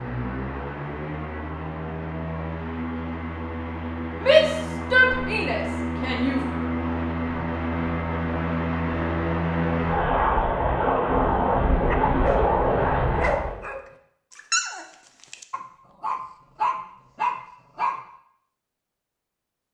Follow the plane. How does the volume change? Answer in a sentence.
The volume of the plane goes up.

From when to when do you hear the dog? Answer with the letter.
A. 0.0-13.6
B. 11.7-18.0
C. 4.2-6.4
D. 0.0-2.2
B.